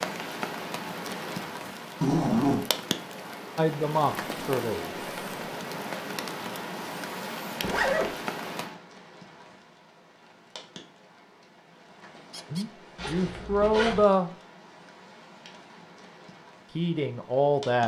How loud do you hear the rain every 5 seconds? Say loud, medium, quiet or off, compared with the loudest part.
loud, loud, quiet, quiet.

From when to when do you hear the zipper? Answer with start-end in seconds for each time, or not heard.
2.0-2.6, 7.6-8.1, 12.9-14.1.